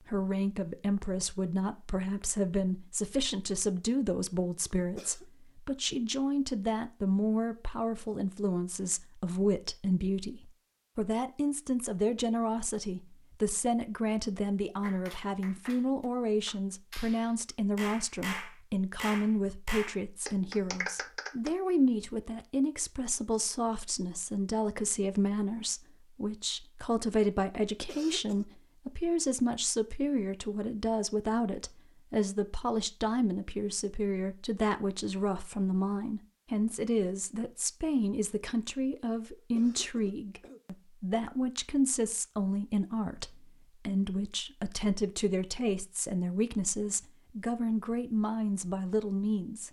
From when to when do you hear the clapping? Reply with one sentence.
The clapping can be heard from 14.8 to 21.5 s.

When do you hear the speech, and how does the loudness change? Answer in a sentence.
The speech can be heard from 0.1 to 49.6 s, at a steady volume.